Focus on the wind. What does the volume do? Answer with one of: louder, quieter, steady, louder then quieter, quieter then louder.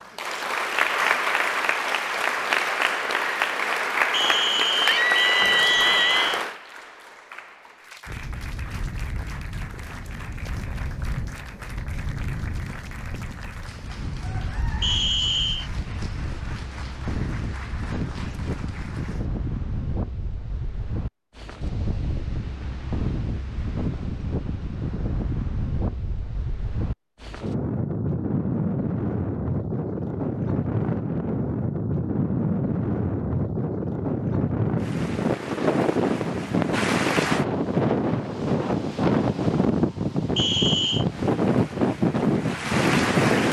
louder.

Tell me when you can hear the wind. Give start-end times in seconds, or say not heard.
8.1-43.4.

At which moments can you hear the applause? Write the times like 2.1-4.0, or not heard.
0.0-19.2, 34.8-37.5, 41.0-43.4.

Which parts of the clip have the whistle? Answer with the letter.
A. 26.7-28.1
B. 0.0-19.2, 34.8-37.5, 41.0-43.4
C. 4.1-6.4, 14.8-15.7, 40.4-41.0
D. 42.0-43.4
C.